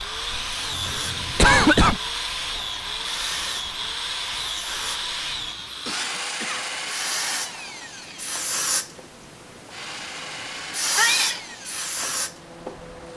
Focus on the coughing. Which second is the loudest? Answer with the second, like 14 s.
2 s.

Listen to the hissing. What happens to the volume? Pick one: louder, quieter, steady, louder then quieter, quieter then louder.
louder.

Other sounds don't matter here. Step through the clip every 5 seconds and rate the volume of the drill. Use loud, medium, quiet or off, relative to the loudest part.
loud, loud, medium.